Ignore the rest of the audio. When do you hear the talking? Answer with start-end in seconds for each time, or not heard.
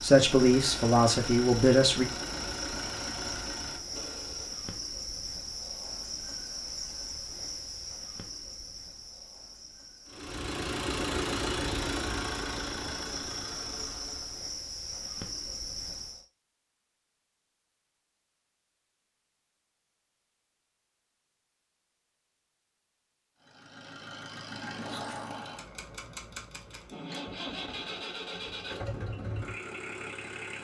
0.0-2.0.